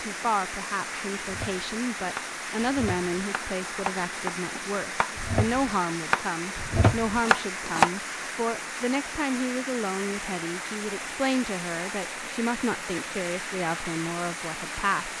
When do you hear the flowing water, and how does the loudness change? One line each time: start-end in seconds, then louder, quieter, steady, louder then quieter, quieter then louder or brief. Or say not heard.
0.0-15.1 steady.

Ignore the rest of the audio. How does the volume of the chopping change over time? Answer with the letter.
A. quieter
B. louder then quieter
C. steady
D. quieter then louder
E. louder
E.